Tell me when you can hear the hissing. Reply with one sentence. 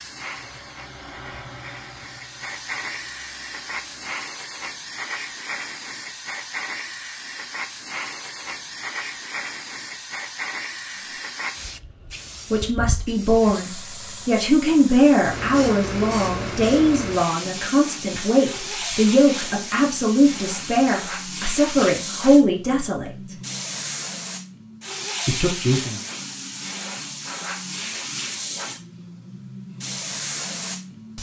The hissing can be heard from 0.0 to 31.1 s.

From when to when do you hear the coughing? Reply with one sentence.
You can't hear the coughing here.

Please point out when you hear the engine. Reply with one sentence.
You can hear the engine from 0.0 to 4.2 s.